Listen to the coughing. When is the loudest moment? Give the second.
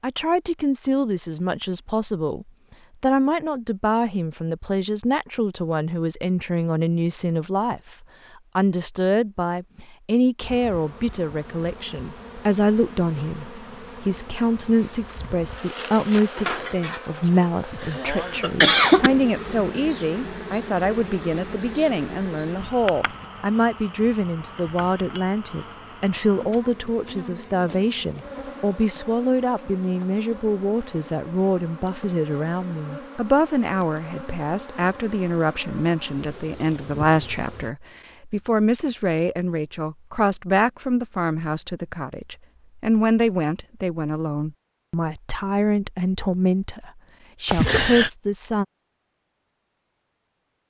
19 s.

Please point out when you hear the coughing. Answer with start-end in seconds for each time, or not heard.
17.6-19.1, 47.5-48.1.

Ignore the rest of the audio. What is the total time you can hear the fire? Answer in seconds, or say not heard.
not heard.